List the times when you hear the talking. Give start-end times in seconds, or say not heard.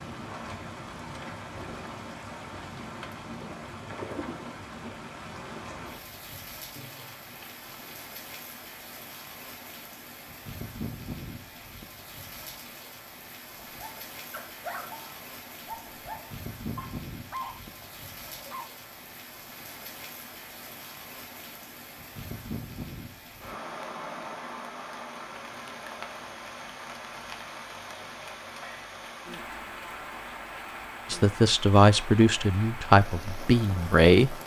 31.1-34.4.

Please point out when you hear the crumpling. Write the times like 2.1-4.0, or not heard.
6.8-8.1.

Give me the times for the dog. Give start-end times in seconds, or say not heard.
13.6-18.7.